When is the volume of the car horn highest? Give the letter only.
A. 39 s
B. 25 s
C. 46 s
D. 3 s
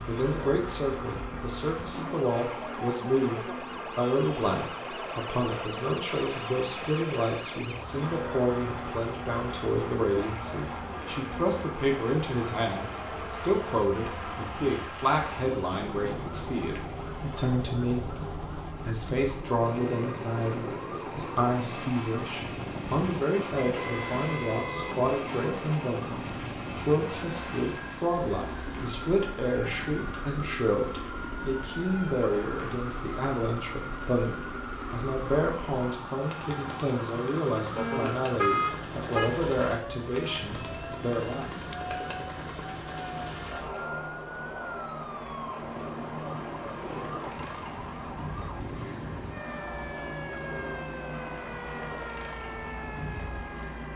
A.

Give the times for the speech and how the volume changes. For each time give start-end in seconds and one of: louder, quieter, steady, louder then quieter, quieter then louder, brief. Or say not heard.
0.1-41.5 steady.